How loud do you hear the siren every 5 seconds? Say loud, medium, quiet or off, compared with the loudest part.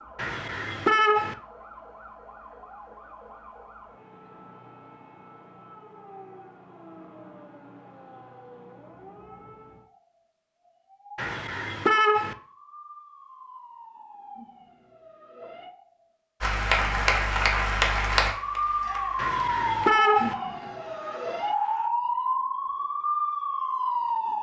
quiet, quiet, quiet, loud, loud.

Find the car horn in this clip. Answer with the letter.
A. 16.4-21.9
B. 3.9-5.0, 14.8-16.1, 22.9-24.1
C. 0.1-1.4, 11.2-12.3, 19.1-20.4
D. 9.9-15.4
C.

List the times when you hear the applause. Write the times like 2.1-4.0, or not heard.
16.4-21.9.